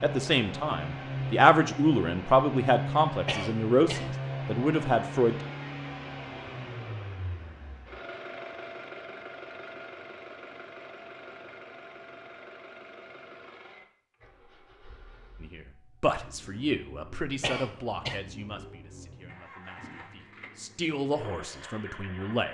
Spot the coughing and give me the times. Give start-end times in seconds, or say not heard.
3.2-4.2, 17.4-18.2.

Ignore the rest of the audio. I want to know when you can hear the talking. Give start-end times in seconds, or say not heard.
0.0-5.3, 15.4-22.5.